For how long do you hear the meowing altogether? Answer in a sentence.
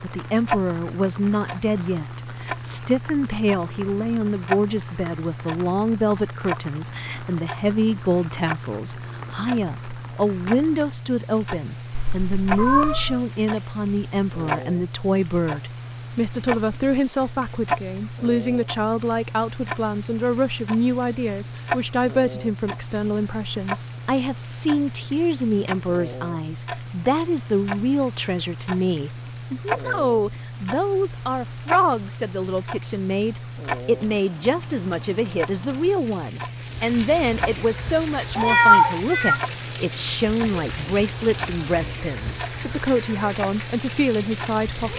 The meowing can be heard for 2 seconds in total.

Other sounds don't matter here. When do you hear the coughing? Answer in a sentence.
The coughing can't be heard in this clip.